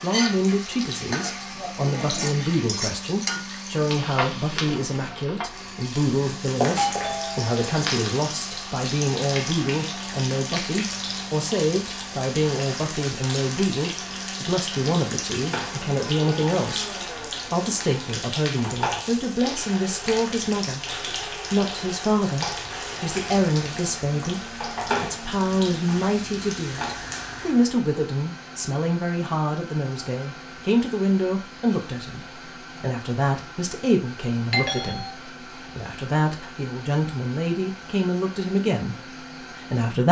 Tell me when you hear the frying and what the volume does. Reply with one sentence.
The frying can be heard from 0.0 to 27.8 s, at a steady volume.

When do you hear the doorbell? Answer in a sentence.
You can hear the doorbell from 6.8 to 7.6 s and from 34.5 to 35.1 s.